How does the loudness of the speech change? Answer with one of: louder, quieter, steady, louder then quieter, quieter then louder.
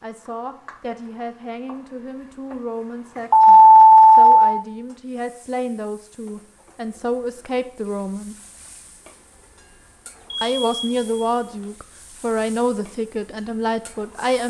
louder.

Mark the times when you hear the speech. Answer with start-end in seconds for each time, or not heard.
0.0-8.3, 10.4-14.4.